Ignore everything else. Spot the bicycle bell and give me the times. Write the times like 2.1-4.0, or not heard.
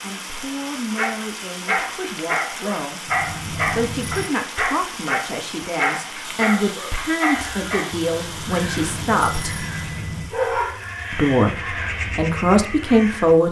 3.0-4.3, 8.2-10.3.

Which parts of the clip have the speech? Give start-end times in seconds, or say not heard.
0.0-3.1, 3.8-9.7, 11.1-13.4.